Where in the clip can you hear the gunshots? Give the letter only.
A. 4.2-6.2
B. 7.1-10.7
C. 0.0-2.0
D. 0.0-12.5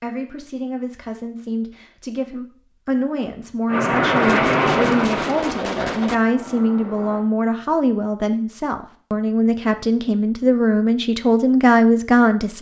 A.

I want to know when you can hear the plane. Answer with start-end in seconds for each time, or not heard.
3.6-7.2.